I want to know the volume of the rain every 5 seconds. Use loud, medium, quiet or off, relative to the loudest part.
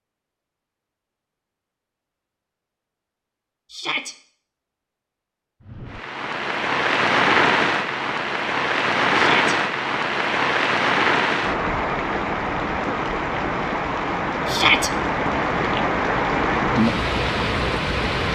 off, loud, loud, loud.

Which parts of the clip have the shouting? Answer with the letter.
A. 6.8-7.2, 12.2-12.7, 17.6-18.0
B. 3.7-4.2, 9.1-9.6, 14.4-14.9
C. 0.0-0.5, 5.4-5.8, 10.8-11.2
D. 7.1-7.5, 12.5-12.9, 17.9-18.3
B.